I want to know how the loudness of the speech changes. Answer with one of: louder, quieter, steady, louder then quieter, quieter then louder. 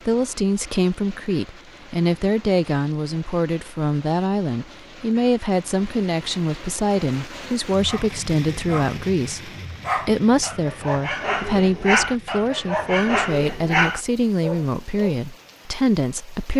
steady.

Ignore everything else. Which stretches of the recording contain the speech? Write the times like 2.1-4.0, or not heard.
0.1-16.5.